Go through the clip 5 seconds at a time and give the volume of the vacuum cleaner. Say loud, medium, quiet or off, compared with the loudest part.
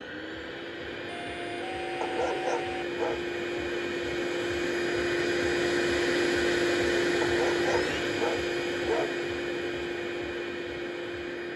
medium, loud, medium.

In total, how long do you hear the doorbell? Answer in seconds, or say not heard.
2 s.